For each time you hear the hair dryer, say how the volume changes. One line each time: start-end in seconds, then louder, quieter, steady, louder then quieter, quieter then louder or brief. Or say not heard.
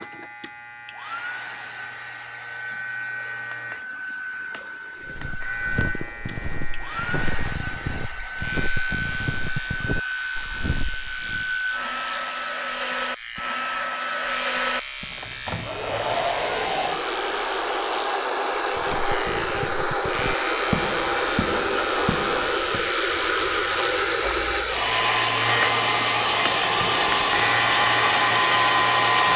0.0-29.3 louder.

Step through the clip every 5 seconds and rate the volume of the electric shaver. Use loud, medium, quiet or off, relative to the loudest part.
quiet, medium, medium, medium, loud, loud.